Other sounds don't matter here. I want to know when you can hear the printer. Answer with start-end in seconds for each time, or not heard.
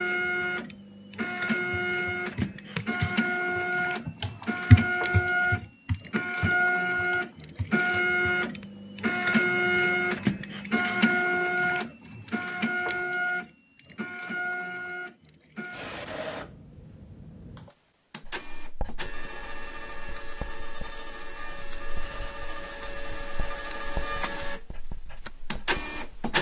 0.0-26.3.